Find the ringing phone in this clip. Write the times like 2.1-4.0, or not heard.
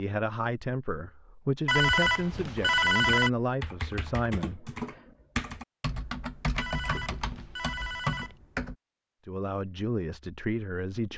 1.6-3.3, 6.5-8.3.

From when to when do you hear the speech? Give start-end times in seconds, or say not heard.
0.0-4.7, 9.2-11.1.